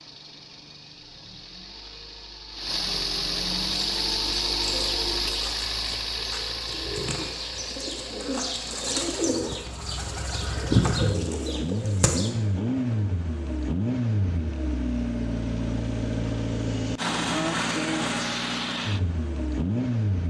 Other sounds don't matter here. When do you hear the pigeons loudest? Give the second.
11 s.